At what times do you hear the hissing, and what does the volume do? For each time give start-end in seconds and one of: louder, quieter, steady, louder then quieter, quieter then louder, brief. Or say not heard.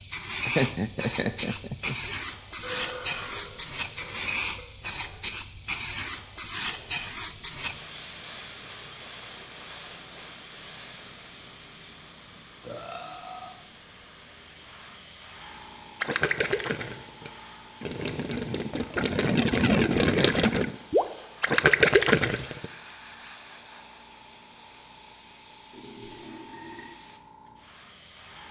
0.0-28.4 quieter.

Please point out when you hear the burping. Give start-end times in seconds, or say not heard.
2.6-4.7, 12.6-13.5, 25.7-26.9.